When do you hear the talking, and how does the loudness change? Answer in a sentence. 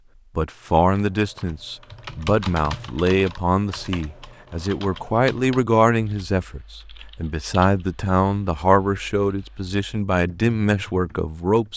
You can hear the talking from 0.3 to 11.7 s, at a steady volume.